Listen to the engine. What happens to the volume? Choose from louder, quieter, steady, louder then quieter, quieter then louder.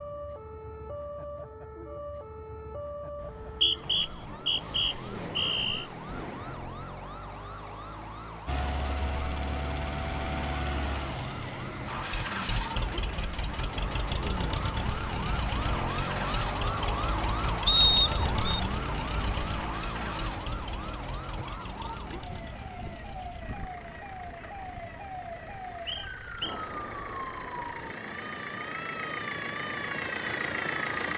quieter then louder.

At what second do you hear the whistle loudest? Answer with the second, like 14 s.
18 s.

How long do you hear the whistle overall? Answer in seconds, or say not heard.
4 s.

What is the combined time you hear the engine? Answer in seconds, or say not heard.
23 s.